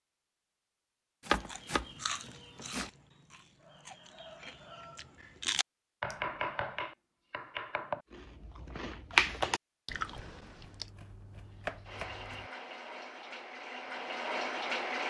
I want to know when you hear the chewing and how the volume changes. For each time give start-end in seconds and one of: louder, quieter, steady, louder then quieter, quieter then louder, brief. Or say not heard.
1.4-6.2 quieter then louder
8.1-10.9 brief.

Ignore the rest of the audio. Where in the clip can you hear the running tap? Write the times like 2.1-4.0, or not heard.
11.4-15.0.